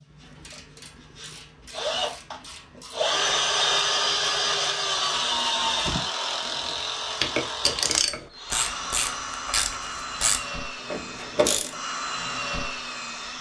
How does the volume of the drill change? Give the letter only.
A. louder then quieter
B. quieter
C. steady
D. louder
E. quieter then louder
A.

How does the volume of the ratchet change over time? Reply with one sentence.
The volume of the ratchet goes up.